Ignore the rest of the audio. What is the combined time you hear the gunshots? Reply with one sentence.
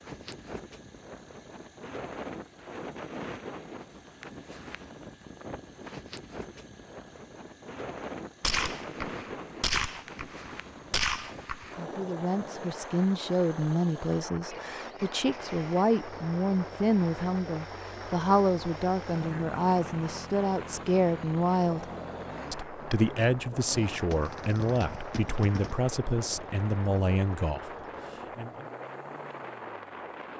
You can hear the gunshots for 5 seconds altogether.